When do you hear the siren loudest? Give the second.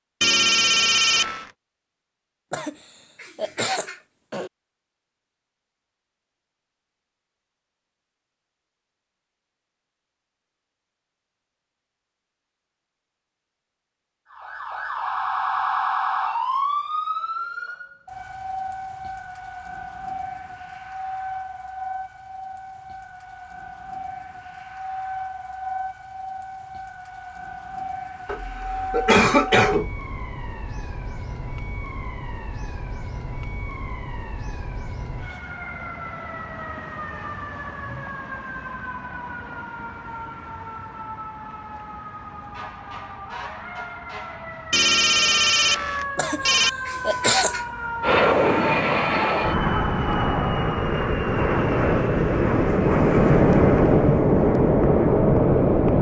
16 s.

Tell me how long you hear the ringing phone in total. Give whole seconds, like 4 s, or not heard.
3 s.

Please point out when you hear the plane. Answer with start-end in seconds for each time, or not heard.
48.0-55.9.